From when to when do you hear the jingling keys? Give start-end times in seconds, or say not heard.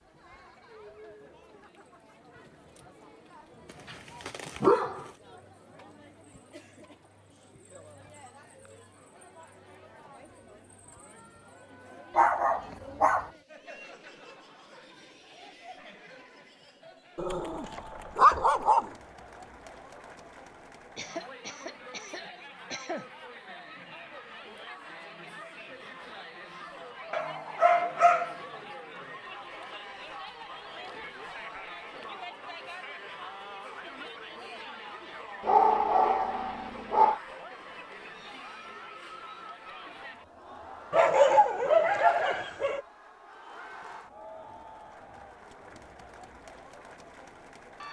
not heard.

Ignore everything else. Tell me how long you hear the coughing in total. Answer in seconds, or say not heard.
2 s.